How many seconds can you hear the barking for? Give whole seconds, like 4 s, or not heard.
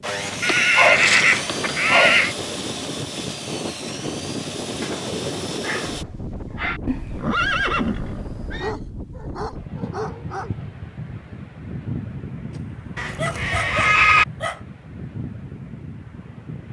8 s.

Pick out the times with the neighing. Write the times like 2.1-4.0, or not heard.
0.4-2.4, 6.8-8.8, 12.9-14.2.